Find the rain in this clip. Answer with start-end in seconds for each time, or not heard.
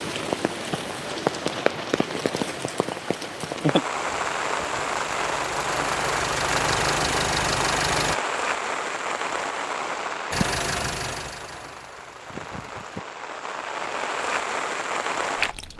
0.0-15.7.